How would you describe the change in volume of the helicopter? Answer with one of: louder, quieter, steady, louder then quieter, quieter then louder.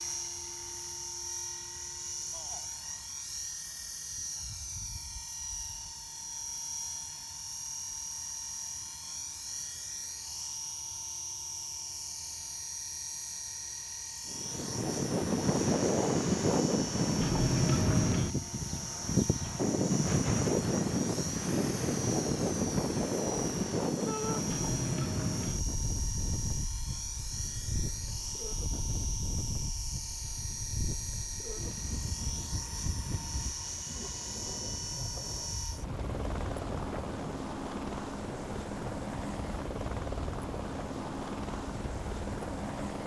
steady.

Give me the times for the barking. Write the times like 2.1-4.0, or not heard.
not heard.